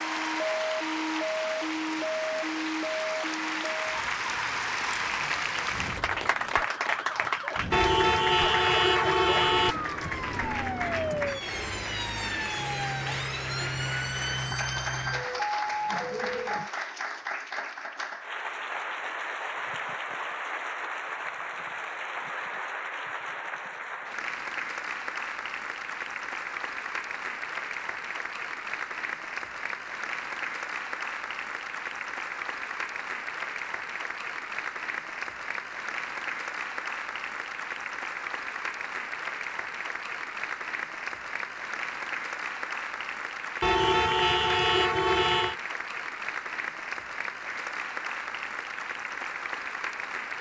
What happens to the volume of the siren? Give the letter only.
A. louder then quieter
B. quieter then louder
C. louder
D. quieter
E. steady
B.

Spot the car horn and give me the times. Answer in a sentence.
You can hear the car horn from 7.7 to 9.8 s and from 43.6 to 45.5 s.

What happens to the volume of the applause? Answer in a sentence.
The loudness of the applause stays about the same.